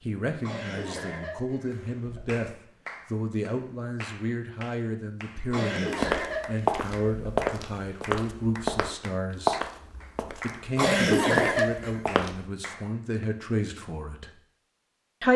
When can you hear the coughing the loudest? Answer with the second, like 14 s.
11 s.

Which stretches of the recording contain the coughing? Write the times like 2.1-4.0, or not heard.
0.4-2.4, 5.5-7.4, 10.8-12.0.